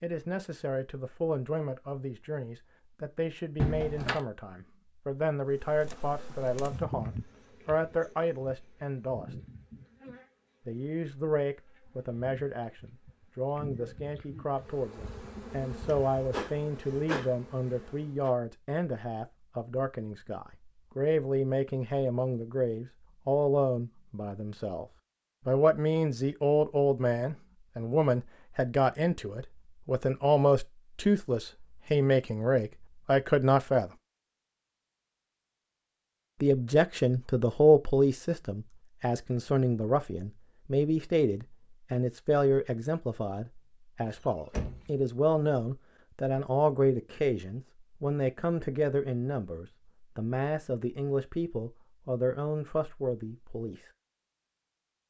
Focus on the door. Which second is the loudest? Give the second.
4 s.